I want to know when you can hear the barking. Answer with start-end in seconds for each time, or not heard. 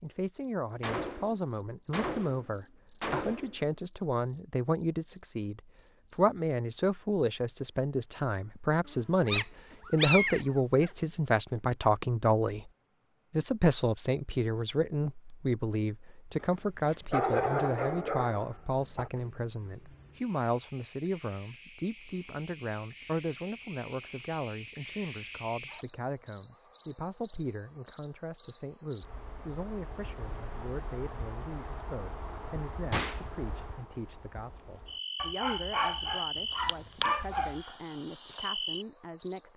8.8-10.9, 16.9-19.1, 35.2-37.6.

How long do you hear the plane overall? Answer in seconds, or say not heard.
not heard.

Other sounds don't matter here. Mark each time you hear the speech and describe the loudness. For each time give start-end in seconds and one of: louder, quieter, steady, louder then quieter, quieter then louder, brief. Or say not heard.
0.0-12.7 louder
13.3-39.5 quieter.